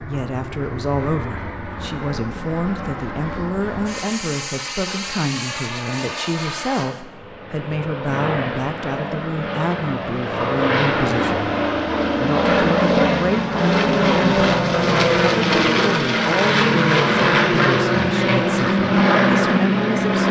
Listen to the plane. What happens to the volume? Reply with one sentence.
The loudness of the plane goes up.